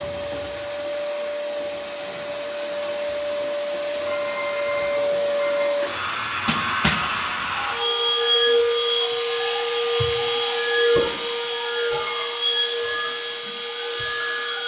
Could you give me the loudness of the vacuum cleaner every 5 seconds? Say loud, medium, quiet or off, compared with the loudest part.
medium, loud, loud.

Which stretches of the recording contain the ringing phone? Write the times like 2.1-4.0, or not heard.
4.0-5.7.